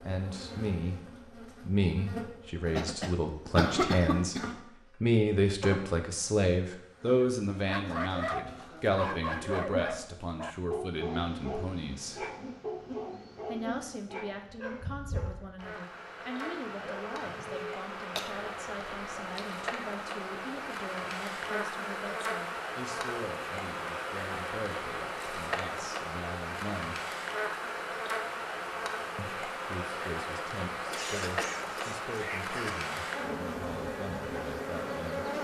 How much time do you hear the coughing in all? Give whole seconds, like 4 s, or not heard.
5 s.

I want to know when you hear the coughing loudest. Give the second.
4 s.